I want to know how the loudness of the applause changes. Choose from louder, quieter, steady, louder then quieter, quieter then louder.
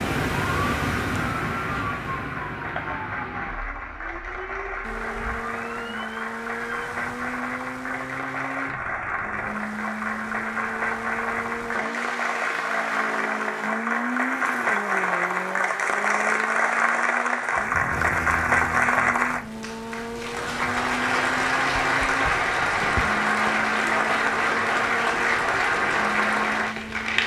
louder.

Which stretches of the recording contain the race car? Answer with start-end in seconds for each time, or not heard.
4.8-27.2.